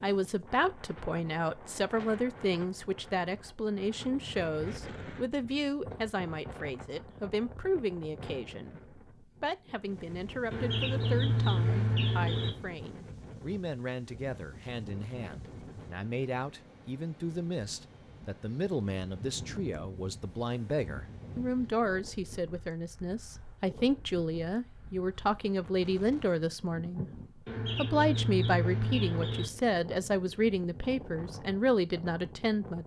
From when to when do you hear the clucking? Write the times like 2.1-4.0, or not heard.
10.5-12.5, 27.4-29.5.